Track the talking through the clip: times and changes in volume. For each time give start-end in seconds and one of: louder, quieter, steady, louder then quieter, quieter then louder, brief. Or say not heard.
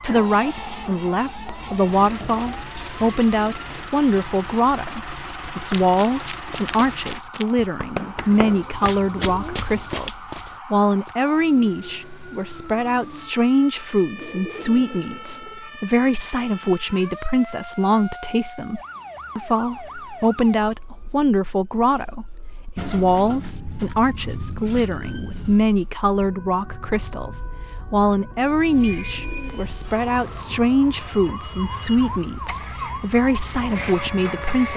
0.0-34.7 steady.